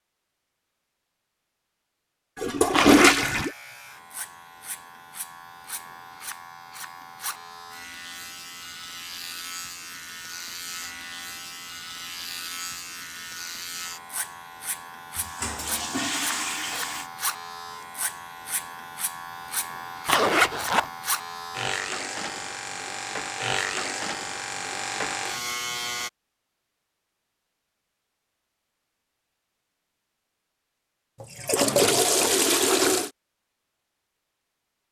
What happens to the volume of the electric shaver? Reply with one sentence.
The volume of the electric shaver goes up.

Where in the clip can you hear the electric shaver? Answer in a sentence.
You can hear the electric shaver from 3.3 to 26.1 s.